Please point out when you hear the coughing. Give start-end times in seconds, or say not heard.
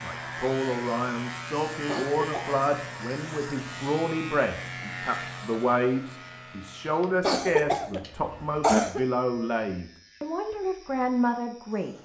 1.9-2.6, 7.2-9.0.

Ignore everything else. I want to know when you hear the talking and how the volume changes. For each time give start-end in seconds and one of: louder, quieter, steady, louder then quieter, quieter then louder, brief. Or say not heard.
0.0-11.9 steady.